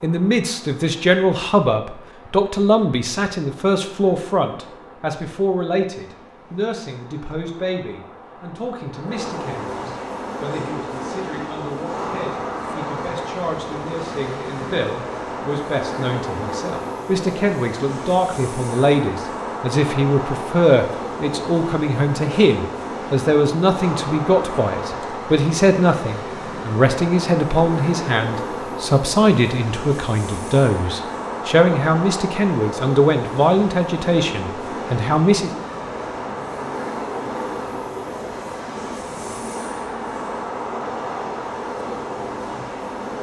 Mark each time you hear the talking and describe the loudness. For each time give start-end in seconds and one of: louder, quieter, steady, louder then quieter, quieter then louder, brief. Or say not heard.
0.0-35.5 quieter then louder.